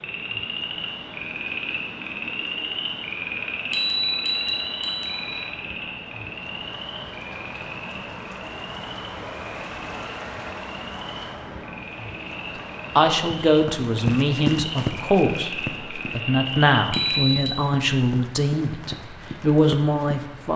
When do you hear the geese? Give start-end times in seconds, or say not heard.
not heard.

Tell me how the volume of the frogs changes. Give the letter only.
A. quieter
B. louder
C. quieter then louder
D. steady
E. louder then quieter
C.